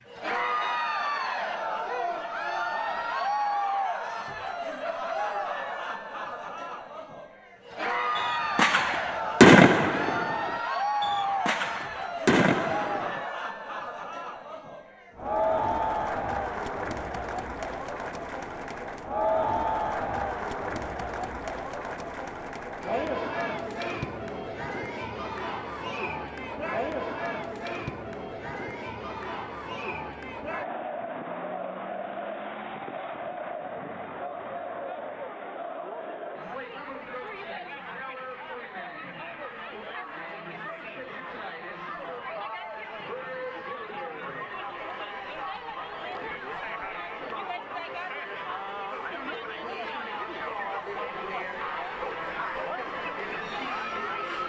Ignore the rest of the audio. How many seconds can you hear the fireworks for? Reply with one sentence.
The fireworks can be heard for 5 seconds in total.